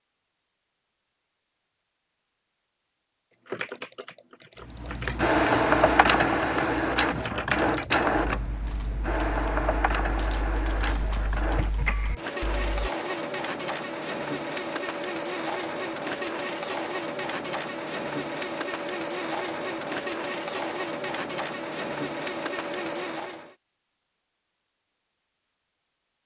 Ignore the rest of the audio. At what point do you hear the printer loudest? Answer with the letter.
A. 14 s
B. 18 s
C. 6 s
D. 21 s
C.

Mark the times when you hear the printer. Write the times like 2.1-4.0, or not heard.
4.7-23.6.